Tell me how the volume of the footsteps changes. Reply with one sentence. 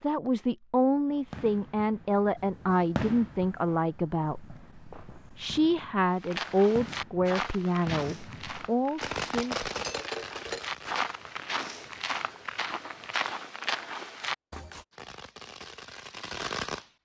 The loudness of the footsteps goes down, then up.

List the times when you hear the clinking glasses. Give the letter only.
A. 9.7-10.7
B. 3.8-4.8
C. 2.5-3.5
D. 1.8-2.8
A.